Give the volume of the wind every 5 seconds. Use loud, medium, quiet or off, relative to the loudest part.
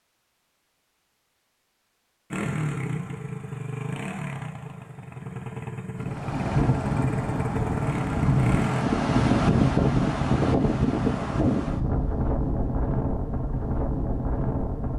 off, loud, loud.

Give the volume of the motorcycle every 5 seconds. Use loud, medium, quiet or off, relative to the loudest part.
loud, loud, off.